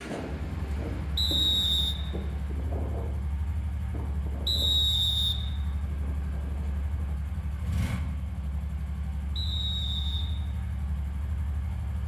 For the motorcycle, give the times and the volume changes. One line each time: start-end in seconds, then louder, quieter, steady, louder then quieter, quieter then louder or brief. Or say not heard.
0.0-12.0 steady.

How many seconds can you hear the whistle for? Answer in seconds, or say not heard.
3 s.